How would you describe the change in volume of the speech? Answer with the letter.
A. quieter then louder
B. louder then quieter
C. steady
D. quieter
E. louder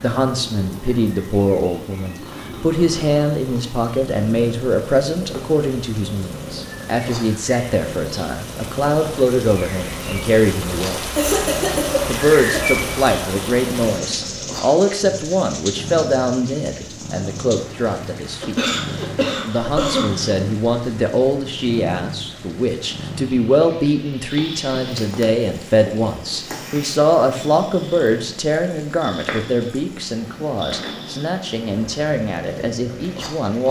C.